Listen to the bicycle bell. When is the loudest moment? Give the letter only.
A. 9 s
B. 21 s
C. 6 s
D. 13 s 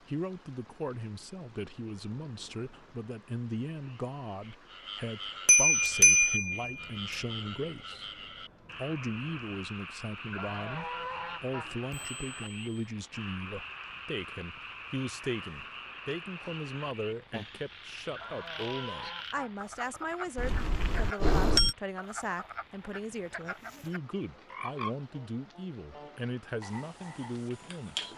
C.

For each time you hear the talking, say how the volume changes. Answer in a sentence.
You can hear the talking from 0.0 to 28.1 s, at a steady volume.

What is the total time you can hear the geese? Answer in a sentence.
The geese can be heard for 3 seconds in total.